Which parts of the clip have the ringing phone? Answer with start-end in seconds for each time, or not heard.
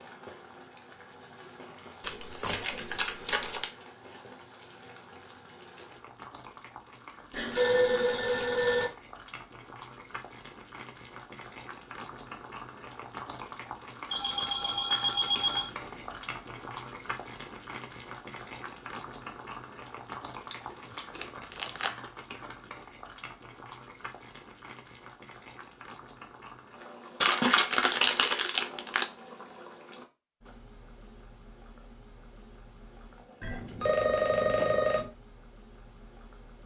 7.3-8.9, 14.1-16.0, 33.4-35.1.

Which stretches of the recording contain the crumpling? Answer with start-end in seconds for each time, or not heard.
2.0-3.7, 20.5-21.9, 27.2-29.1.